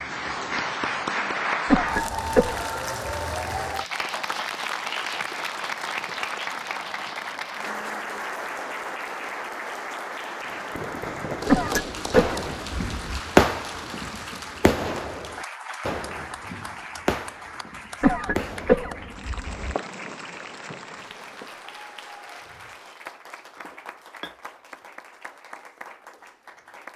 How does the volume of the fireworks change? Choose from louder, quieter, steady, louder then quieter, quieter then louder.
louder then quieter.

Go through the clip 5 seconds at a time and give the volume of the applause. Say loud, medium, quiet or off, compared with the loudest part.
loud, loud, medium, medium, quiet, quiet.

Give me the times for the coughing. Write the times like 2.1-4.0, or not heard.
1.6-2.6, 11.4-13.2, 18.0-19.8.